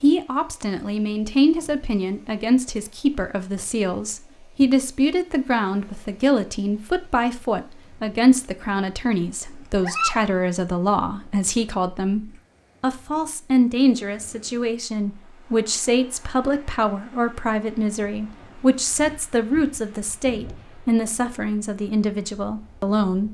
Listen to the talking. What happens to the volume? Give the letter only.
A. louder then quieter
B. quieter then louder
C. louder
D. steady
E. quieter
D.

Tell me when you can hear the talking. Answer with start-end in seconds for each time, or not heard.
0.0-23.2.